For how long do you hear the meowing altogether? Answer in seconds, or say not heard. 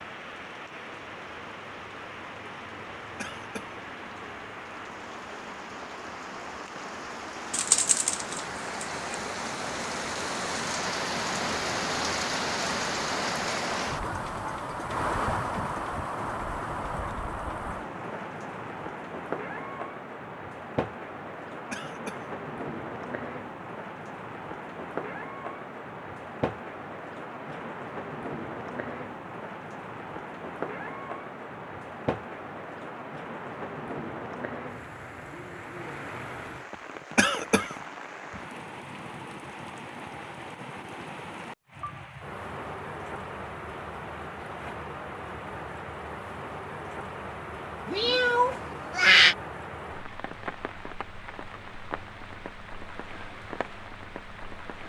3 s.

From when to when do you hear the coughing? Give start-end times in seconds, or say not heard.
3.1-3.8, 21.7-22.3, 37.1-37.8.